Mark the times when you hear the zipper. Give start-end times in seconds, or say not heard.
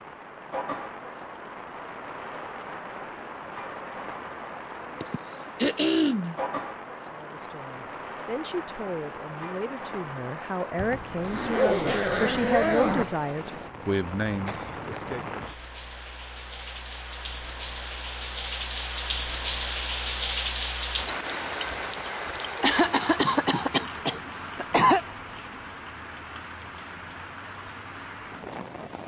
10.8-13.2.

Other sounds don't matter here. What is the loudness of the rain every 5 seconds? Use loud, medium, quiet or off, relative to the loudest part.
medium, medium, medium, loud, loud, medium.